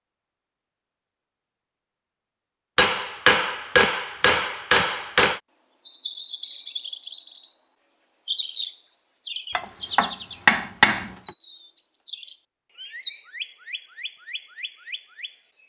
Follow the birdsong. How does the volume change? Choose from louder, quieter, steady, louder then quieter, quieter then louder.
quieter.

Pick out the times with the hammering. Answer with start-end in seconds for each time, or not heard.
2.8-5.4, 9.6-11.3.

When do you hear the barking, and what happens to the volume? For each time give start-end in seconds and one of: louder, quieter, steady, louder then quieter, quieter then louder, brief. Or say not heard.
not heard.